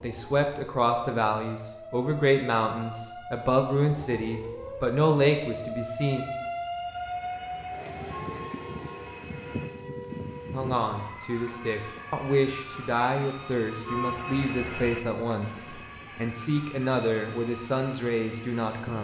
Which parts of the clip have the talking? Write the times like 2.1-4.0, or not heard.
0.0-6.2, 10.5-19.0.